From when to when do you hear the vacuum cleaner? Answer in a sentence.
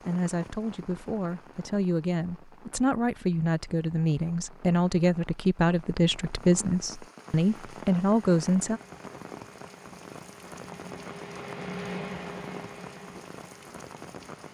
The vacuum cleaner can be heard from 7.3 to 14.4 s.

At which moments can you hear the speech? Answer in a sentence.
You can hear the speech from 0.1 to 8.8 s.